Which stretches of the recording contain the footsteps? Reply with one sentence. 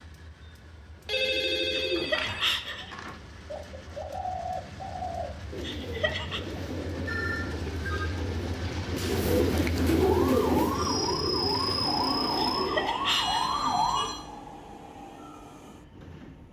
The footsteps can't be heard in this clip.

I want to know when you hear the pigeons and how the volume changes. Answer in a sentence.
The pigeons can be heard from 0.9 to 12.9 s, getting louder.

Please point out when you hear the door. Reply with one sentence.
You can't hear the door here.